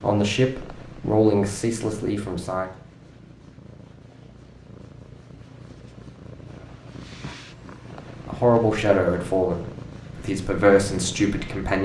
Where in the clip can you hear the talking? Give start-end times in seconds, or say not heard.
0.0-2.7, 8.2-11.8.